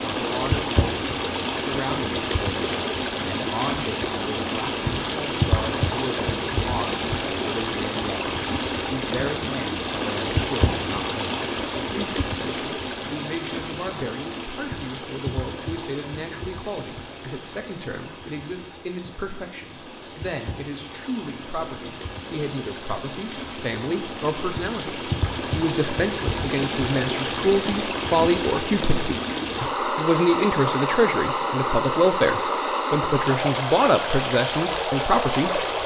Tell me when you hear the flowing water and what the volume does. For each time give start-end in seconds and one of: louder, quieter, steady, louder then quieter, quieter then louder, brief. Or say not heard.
0.0-35.8 quieter then louder.